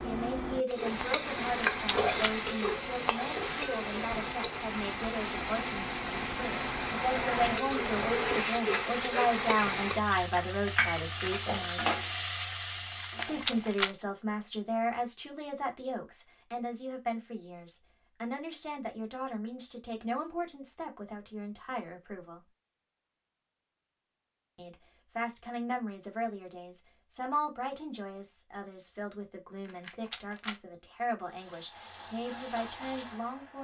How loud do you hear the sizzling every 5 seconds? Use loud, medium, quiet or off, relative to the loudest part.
loud, loud, loud, off, off, off, quiet.